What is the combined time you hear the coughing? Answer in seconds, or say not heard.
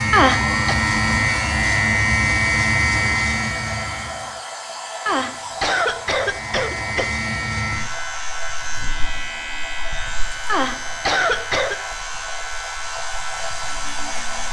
4 s.